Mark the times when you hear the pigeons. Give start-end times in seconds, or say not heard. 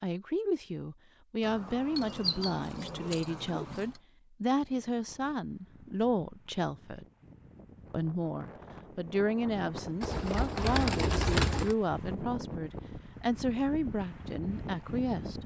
2.0-3.6, 10.0-11.8.